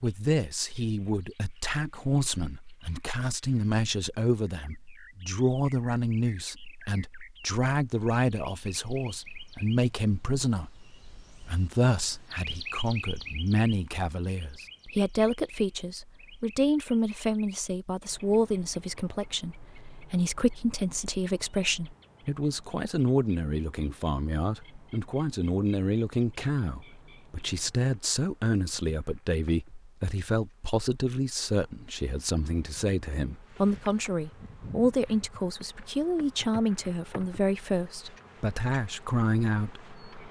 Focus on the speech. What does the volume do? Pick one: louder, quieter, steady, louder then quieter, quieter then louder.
steady.